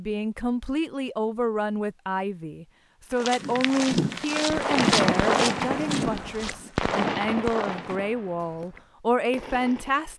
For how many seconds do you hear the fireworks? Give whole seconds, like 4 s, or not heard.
6 s.